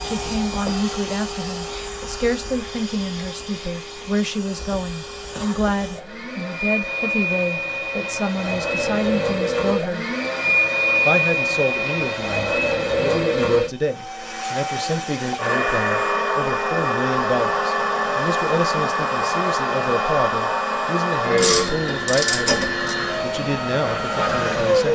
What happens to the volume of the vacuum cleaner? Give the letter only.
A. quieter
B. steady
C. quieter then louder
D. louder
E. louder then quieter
D.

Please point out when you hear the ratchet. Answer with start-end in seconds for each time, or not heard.
21.4-22.9.